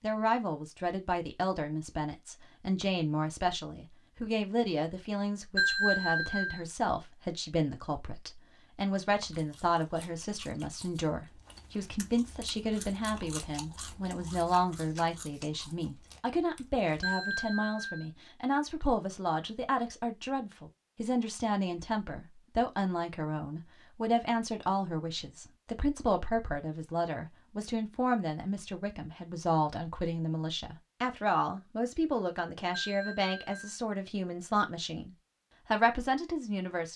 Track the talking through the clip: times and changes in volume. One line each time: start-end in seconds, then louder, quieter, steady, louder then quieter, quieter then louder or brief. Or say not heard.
0.0-36.9 steady.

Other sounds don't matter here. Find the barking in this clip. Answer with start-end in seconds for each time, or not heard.
not heard.